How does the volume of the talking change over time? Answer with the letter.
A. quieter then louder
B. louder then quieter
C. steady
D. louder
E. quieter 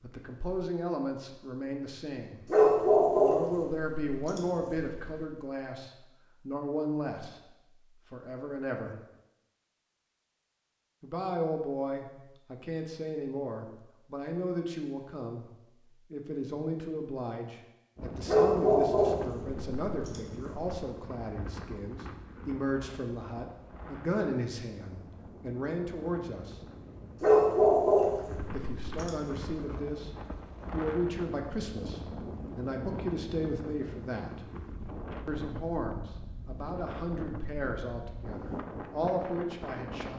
C.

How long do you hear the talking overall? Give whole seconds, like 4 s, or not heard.
35 s.